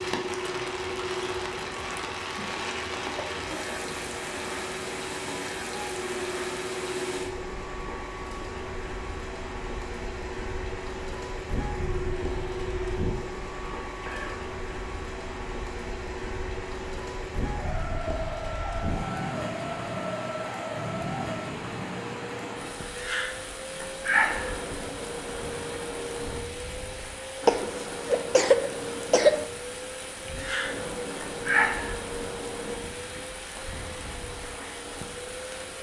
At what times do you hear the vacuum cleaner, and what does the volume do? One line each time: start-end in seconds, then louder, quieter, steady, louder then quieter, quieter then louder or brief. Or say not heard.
0.0-35.7 steady.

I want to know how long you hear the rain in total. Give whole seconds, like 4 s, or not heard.
36 s.